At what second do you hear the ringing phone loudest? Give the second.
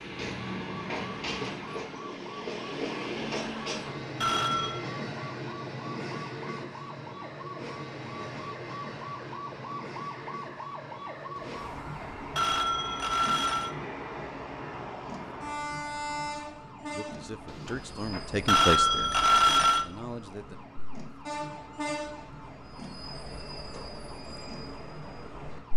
19 s.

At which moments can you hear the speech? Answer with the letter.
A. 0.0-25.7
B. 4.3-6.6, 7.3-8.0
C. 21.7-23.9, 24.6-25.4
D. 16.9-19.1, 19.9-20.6
D.